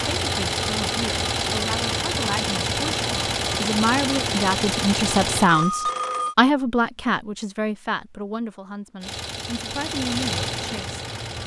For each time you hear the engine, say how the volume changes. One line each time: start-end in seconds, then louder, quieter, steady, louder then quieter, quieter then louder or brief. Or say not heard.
0.0-5.5 steady
9.0-11.4 brief.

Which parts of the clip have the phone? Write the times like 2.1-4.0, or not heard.
5.5-6.3.